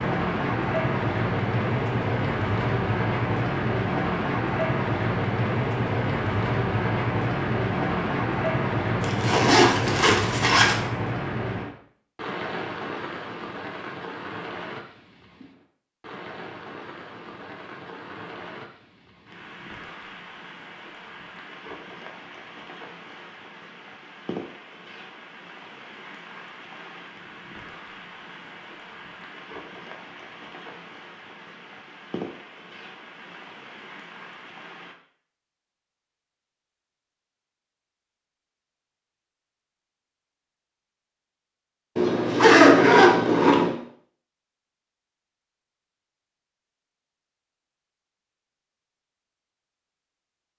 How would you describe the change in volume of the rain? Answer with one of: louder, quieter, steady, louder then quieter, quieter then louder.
quieter.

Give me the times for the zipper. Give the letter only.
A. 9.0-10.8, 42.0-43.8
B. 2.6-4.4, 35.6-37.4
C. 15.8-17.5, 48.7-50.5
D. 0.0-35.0
A.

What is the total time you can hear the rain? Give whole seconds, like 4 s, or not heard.
35 s.